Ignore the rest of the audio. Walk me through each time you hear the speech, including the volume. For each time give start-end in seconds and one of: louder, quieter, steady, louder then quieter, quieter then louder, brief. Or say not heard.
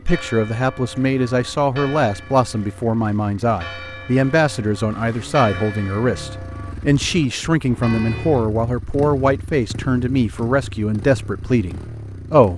0.1-12.5 steady.